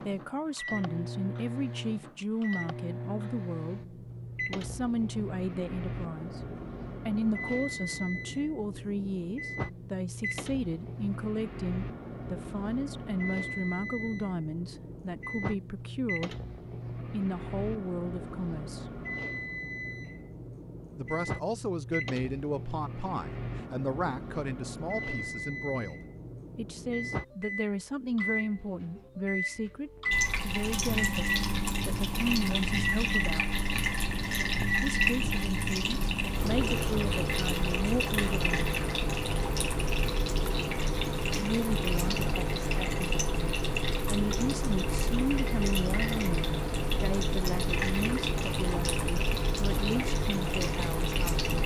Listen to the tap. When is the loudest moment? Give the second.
35 s.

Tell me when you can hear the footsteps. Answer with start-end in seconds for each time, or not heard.
not heard.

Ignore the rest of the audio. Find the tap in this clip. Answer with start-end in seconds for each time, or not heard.
30.1-51.6.